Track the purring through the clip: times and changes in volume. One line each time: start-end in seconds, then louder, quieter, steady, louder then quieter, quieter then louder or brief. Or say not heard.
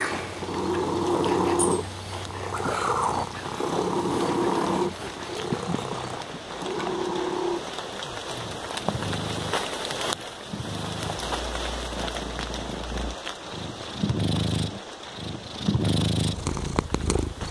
0.0-17.4 quieter then louder.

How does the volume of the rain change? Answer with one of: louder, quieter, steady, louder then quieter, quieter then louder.
louder then quieter.